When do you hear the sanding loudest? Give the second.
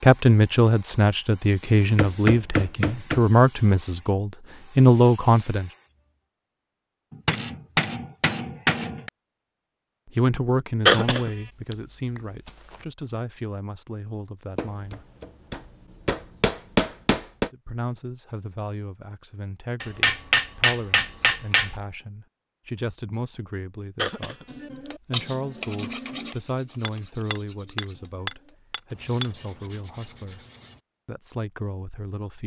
25 s.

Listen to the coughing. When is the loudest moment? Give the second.
11 s.